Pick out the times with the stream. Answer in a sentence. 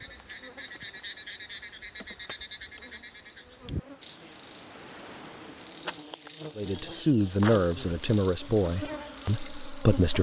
The stream can be heard from 0.0 to 6.1 s.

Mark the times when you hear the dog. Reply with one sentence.
The dog can't be heard in this clip.